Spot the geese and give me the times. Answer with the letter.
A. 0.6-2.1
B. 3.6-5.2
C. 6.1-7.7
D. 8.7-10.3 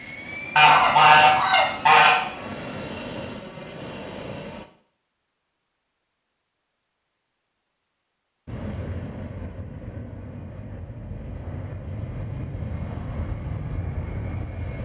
A.